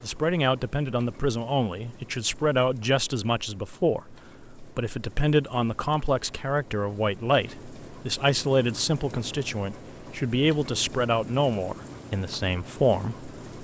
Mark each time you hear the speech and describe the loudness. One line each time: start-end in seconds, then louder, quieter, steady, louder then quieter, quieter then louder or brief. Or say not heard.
0.0-13.3 steady.